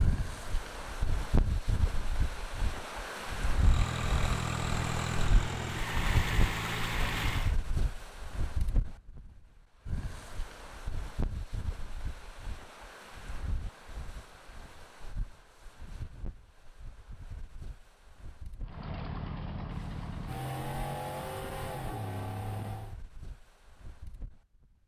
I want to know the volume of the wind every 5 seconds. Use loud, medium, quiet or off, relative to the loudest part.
loud, loud, medium, quiet, quiet.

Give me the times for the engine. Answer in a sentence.
The engine can be heard from 3.5 to 7.5 s and from 18.6 to 22.9 s.